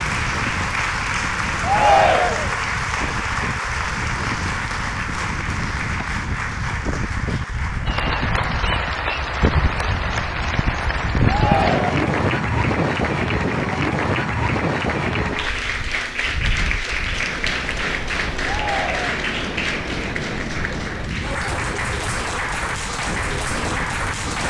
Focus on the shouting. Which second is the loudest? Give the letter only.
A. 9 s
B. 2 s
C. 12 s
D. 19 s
B.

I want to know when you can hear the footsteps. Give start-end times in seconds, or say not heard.
not heard.